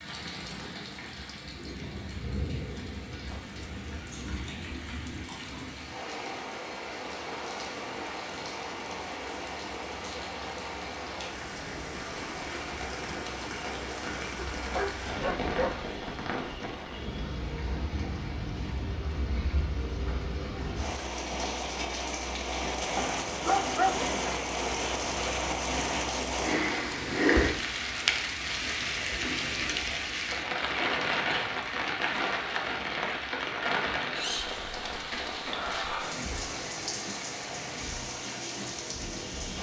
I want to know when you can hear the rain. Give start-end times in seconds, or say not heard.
0.0-39.5.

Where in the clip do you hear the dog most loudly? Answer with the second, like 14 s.
24 s.